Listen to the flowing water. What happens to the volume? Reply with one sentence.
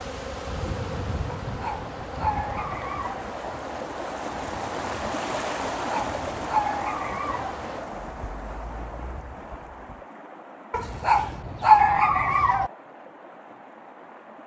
The volume of the flowing water goes up, then down.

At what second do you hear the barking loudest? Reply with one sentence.
The loudest moment of the barking is at 12 seconds.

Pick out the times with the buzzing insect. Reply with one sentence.
You can hear the buzzing insect from 0.0 to 10.0 s.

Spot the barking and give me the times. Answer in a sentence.
The barking can be heard from 1.4 to 3.2 s, from 5.8 to 7.5 s and from 10.7 to 12.7 s.